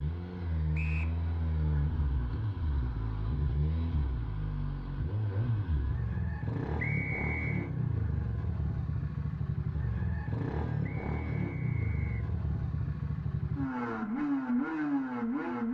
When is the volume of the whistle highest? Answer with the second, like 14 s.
7 s.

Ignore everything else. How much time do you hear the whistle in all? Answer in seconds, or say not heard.
3 s.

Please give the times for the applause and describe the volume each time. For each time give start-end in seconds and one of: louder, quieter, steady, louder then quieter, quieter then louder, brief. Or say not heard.
not heard.